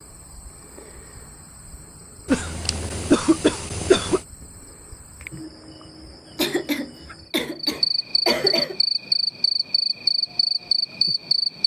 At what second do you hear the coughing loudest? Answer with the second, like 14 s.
3 s.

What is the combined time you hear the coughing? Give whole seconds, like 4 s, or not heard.
4 s.